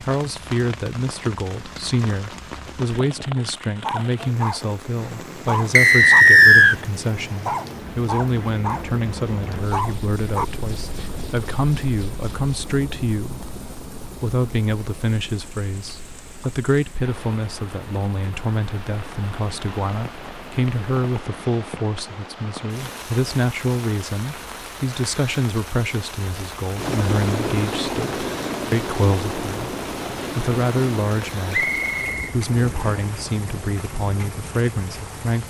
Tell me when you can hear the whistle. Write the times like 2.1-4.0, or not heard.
5.8-6.8, 31.5-33.0.